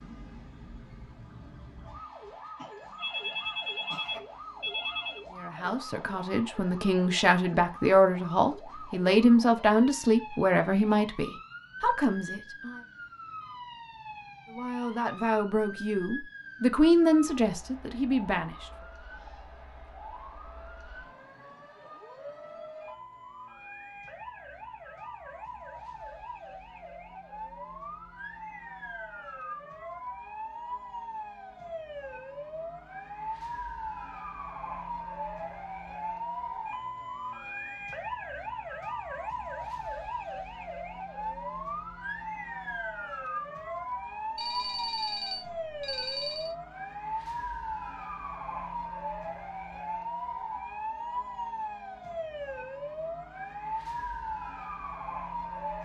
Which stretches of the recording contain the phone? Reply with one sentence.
The phone can be heard from 3.0 to 5.2 s and from 44.4 to 46.5 s.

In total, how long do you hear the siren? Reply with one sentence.
You can hear the siren for 56 seconds altogether.